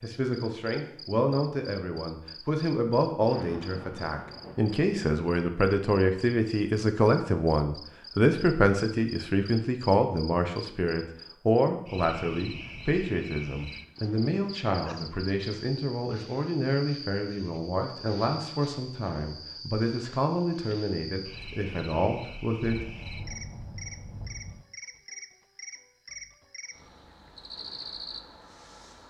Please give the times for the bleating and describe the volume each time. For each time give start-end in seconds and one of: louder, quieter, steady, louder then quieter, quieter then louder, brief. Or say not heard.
not heard.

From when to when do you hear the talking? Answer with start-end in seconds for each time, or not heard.
0.0-22.8.